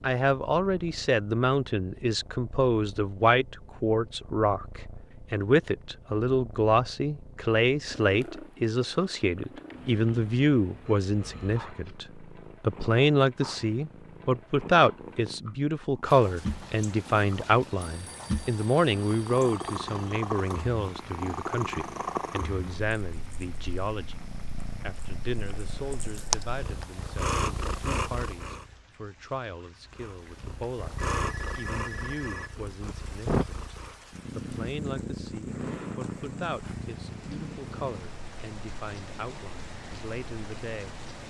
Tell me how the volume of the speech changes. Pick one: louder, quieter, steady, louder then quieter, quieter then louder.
quieter.